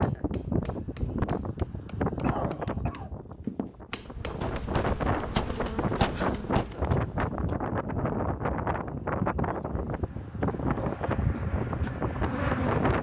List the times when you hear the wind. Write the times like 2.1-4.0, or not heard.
0.0-12.9.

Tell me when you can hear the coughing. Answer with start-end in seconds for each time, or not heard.
1.6-3.1.